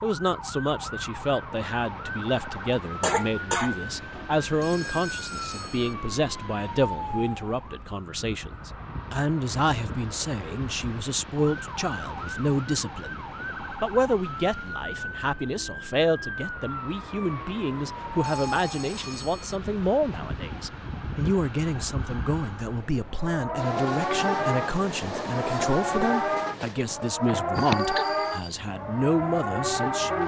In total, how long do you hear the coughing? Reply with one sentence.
The coughing can be heard for 2 seconds in total.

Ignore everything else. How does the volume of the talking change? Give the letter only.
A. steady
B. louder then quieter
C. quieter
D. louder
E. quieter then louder
A.